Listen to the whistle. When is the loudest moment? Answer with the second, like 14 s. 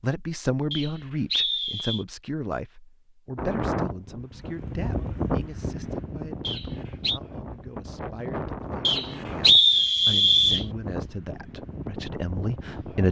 10 s.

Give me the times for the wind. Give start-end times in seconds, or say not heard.
3.4-13.0.